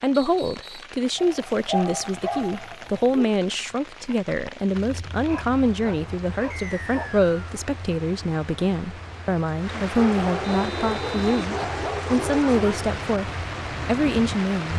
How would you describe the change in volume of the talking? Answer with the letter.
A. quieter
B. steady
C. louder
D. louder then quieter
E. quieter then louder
B.